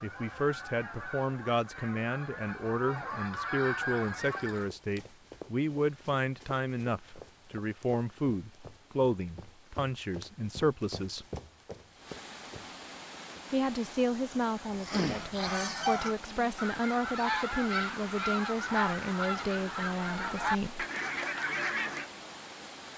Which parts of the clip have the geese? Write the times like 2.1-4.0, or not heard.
0.0-4.7, 14.8-22.1.